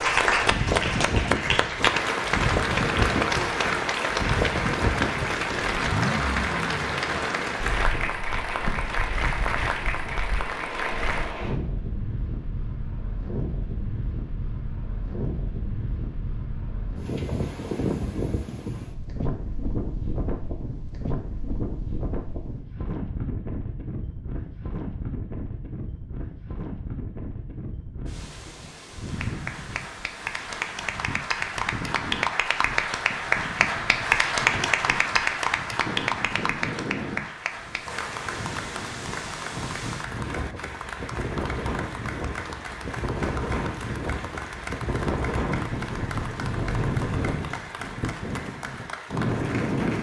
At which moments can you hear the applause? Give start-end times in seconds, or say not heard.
0.0-11.3, 29.1-49.9.